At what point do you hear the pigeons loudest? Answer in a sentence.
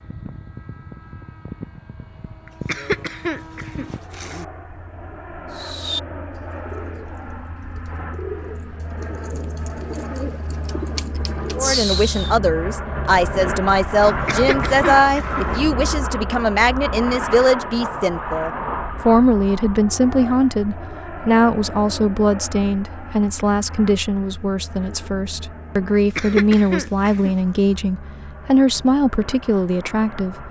The volume of the pigeons peaks at 12 seconds.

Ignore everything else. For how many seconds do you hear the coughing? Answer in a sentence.
You can hear the coughing for 5 seconds altogether.